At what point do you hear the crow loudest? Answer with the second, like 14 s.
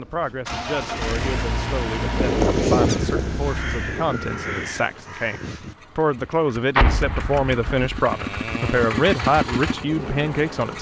3 s.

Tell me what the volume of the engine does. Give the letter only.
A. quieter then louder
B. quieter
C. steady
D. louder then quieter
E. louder
A.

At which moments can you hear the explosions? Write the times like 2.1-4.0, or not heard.
6.8-7.9.